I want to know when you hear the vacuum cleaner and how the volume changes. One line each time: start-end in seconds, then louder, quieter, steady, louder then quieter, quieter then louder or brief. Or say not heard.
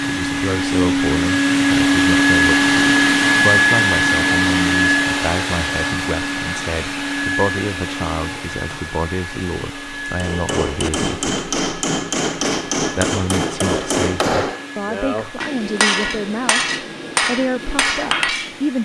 0.0-18.8 quieter.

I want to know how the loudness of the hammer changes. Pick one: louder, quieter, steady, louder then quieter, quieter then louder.
steady.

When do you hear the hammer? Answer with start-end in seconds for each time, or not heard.
10.1-18.6.